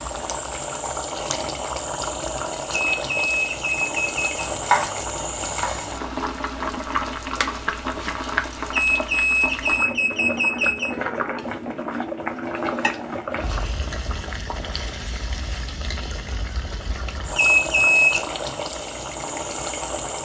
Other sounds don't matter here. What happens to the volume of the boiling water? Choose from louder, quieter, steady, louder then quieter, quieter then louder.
steady.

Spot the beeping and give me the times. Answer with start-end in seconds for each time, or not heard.
2.9-4.2, 8.7-10.9, 17.4-18.2.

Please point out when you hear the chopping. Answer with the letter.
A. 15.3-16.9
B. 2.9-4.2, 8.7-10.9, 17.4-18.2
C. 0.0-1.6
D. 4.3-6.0
D.